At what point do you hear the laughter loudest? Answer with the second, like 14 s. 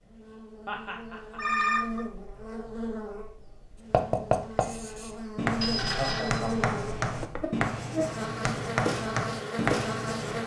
6 s.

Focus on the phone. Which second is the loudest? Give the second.
2 s.